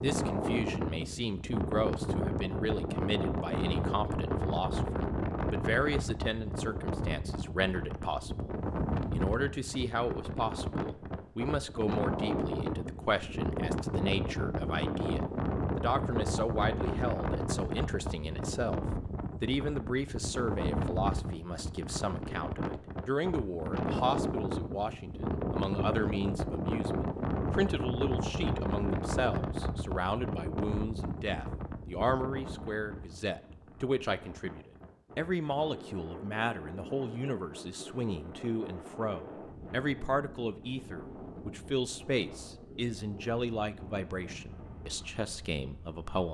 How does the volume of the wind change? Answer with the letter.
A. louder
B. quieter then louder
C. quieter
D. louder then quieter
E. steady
C.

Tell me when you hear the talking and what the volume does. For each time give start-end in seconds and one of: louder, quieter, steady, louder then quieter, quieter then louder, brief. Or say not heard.
0.0-46.2 steady.